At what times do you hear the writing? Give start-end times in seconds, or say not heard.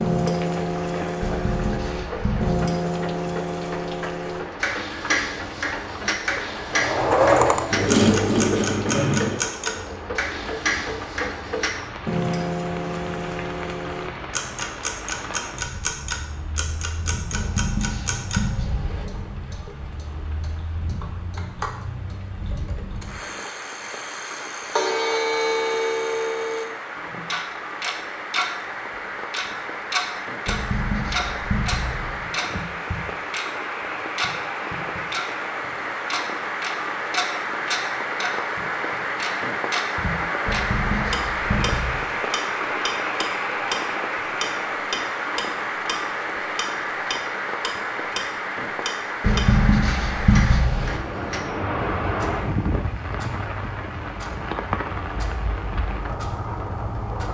1.2-2.7, 17.3-19.1, 30.4-32.2, 40.5-42.0, 49.2-51.0.